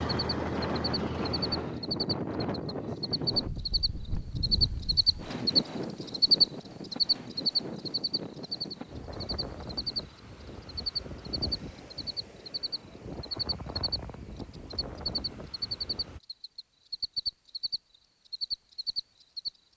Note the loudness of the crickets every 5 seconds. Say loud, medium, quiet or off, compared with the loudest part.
medium, loud, medium, medium.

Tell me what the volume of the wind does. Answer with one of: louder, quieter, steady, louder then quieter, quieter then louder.
quieter.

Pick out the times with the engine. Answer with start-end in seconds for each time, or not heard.
0.0-1.9.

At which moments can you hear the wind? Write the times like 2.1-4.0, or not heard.
0.0-16.2.